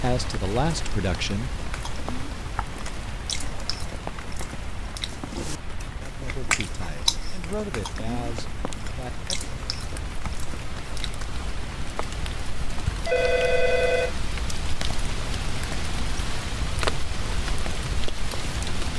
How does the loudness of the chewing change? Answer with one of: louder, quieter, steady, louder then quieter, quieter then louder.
louder then quieter.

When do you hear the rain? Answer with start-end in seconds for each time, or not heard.
0.0-18.9.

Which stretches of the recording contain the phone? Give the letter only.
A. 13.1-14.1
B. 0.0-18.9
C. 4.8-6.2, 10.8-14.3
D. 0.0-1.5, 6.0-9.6
A.